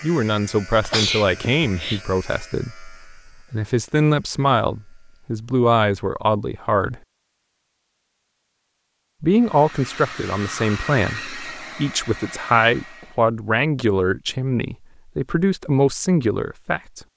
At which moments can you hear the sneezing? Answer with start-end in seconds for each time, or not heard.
0.8-2.0.